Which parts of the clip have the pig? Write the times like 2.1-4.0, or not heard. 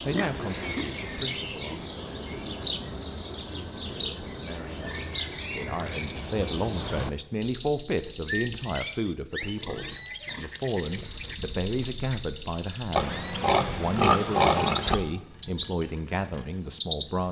0.1-0.8, 4.7-6.5, 9.4-11.3, 12.9-14.9.